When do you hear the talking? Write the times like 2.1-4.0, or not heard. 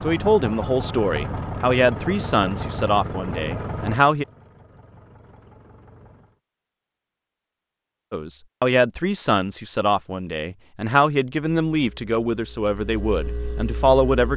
0.0-4.2, 8.1-14.3.